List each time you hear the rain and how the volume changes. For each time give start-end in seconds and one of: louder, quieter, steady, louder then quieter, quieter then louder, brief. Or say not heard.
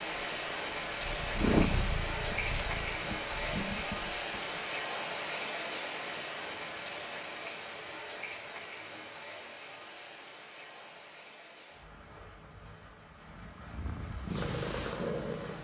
0.0-15.5 quieter.